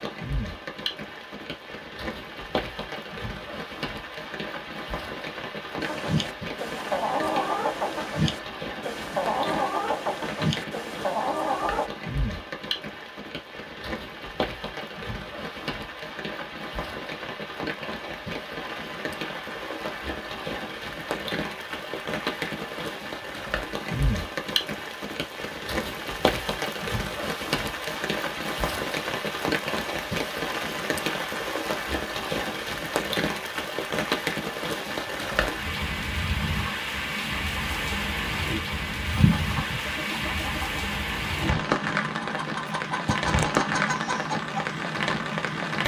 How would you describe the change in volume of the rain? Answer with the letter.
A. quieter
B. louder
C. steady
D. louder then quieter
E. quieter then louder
B.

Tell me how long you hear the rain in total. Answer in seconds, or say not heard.
46 s.